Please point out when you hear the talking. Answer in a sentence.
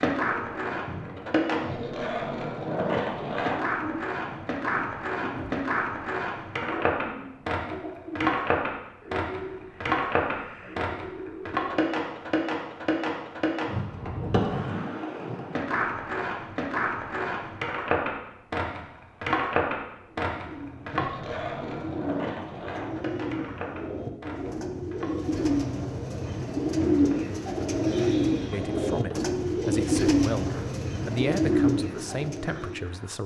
You can hear the talking from 28.5 to 33.2 s.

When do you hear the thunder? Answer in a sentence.
The thunder can't be heard in this clip.